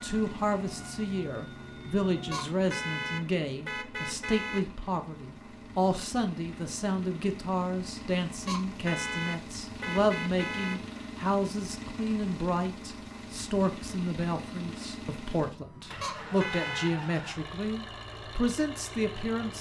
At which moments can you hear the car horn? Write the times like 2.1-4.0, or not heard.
2.3-4.7, 8.4-10.8, 16.0-16.9.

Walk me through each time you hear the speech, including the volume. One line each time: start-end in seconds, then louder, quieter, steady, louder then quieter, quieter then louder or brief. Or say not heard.
0.0-19.5 steady.